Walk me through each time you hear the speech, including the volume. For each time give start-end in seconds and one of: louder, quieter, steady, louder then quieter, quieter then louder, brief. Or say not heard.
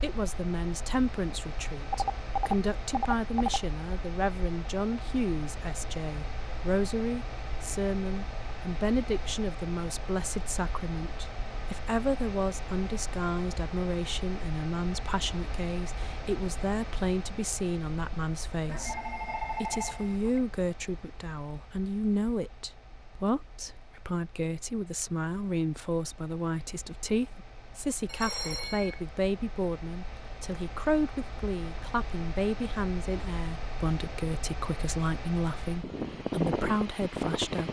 0.0-37.6 steady.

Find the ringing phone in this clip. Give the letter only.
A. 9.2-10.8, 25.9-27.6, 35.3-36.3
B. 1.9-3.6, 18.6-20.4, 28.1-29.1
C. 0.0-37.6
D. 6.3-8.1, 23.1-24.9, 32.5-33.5
B.